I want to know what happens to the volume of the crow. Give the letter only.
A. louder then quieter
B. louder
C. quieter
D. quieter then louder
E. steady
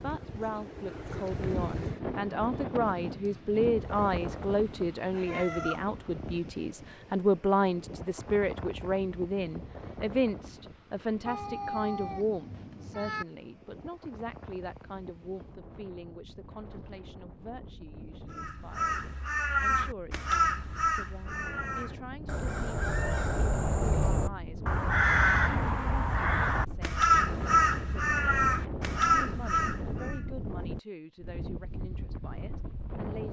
D.